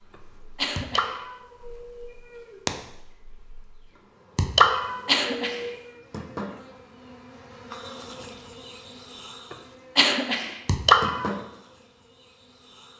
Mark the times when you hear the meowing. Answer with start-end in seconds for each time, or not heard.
0.8-2.7, 4.3-5.8, 10.7-11.3.